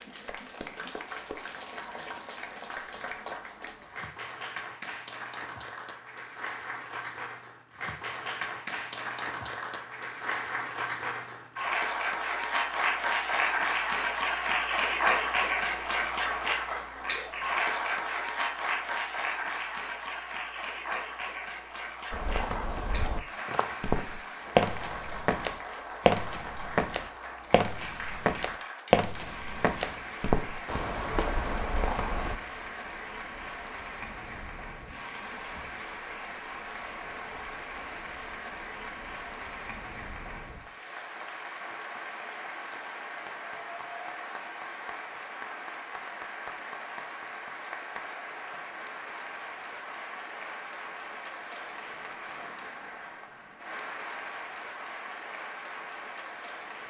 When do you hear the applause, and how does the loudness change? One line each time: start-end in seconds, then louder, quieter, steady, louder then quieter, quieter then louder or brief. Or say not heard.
0.0-56.8 louder then quieter.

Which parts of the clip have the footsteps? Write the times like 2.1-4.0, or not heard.
22.1-32.4.